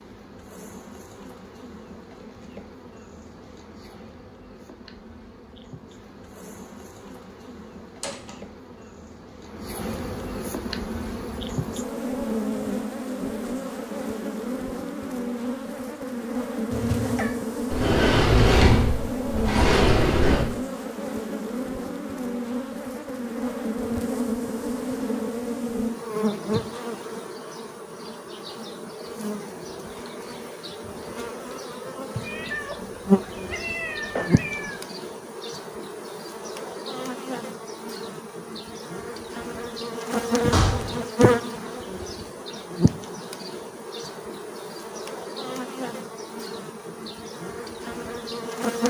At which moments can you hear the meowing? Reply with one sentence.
The meowing can be heard from 16.7 to 17.4 s and from 32.2 to 34.8 s.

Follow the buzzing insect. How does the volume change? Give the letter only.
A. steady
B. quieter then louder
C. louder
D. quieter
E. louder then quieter
C.